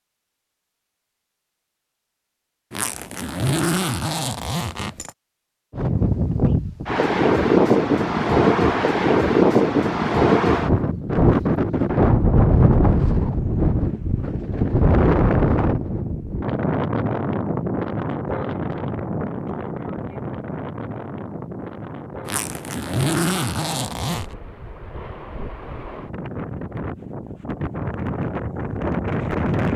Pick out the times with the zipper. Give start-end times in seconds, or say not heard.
2.7-5.1, 22.2-24.3.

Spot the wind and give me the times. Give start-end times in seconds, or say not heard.
5.7-29.7.